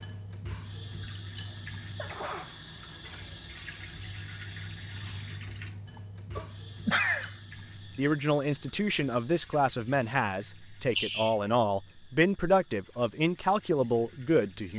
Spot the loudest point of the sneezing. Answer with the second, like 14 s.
7 s.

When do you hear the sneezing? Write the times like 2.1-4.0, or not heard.
1.4-3.0, 6.3-7.3, 10.9-11.3.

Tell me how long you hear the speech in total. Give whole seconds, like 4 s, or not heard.
7 s.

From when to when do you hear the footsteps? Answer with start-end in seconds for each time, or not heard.
not heard.